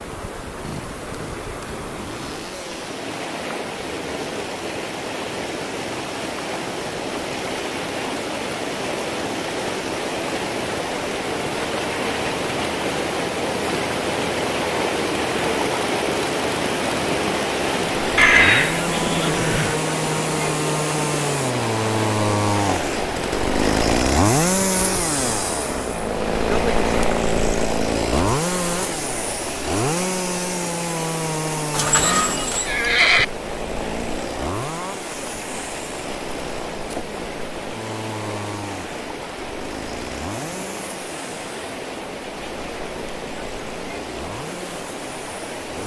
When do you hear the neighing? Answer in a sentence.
You can hear the neighing from 18.1 to 19.8 s and from 31.7 to 33.2 s.